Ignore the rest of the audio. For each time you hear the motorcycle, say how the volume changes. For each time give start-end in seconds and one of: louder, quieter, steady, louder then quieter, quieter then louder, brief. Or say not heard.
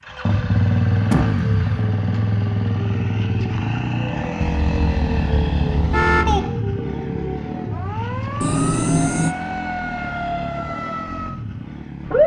0.0-12.2 quieter.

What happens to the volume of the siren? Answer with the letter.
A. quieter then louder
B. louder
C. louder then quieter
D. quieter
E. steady
B.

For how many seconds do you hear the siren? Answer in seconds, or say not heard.
12 s.